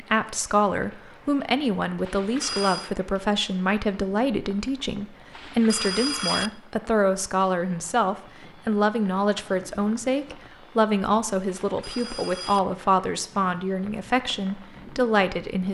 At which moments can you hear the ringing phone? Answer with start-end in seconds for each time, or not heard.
2.0-2.9, 5.3-6.5, 11.6-12.6.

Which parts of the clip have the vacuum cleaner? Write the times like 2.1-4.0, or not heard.
not heard.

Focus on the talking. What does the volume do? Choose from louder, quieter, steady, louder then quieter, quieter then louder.
steady.